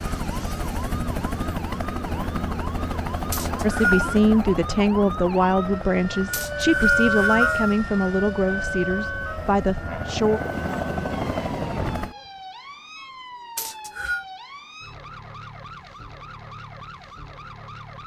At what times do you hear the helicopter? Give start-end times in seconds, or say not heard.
0.0-12.2.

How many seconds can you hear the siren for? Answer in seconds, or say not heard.
18 s.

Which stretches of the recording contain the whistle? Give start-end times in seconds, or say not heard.
3.3-4.2, 6.3-7.8, 13.6-14.2.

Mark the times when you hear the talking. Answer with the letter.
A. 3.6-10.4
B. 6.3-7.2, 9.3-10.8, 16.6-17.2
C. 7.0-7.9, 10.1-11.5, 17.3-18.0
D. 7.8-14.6
A.